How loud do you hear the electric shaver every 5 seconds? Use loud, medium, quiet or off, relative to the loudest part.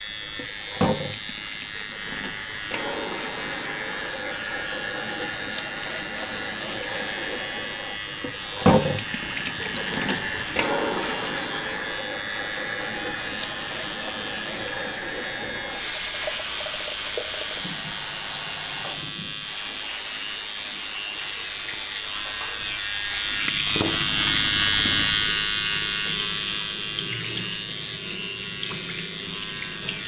medium, medium, medium, medium, loud, loud.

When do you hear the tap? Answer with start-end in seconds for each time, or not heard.
0.0-30.0.